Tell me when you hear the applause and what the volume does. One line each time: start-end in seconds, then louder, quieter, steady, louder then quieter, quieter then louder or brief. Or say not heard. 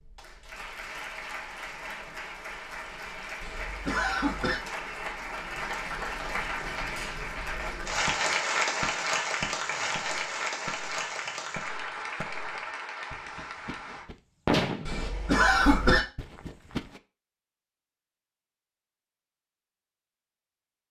0.0-14.1 louder then quieter.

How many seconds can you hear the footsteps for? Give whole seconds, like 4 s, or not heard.
not heard.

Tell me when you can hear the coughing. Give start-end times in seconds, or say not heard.
3.4-4.6, 14.8-16.0.